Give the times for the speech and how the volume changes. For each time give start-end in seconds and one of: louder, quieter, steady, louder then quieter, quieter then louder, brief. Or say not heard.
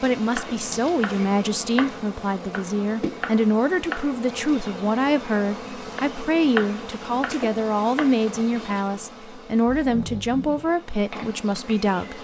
0.0-12.1 steady.